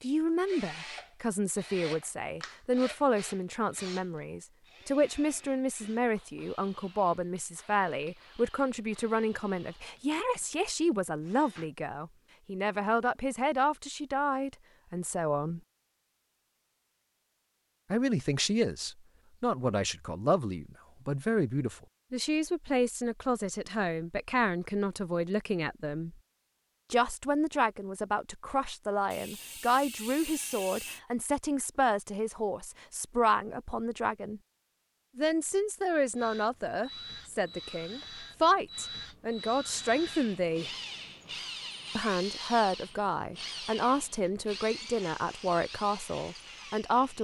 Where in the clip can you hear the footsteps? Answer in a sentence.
You can't hear the footsteps here.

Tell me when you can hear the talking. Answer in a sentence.
The talking can be heard from 0.0 to 15.6 s, from 17.9 to 26.1 s, from 26.9 to 34.4 s, from 35.1 to 40.7 s and from 42.0 to 47.1 s.